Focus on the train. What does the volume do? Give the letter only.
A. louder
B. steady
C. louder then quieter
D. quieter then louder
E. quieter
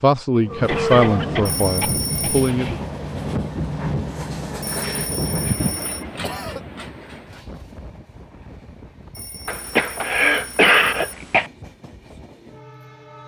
E.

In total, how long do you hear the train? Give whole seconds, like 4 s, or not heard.
13 s.